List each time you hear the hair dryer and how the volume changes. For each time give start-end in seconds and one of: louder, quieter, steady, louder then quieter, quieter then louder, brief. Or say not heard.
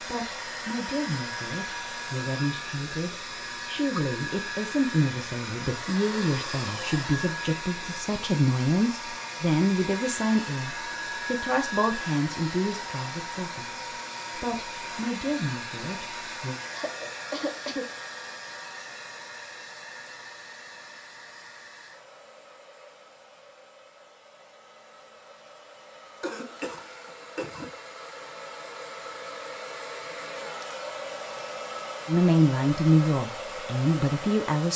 0.0-34.7 quieter then louder.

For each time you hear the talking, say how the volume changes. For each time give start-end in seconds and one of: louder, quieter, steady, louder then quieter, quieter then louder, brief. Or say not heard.
0.0-16.6 louder then quieter
32.0-34.7 brief.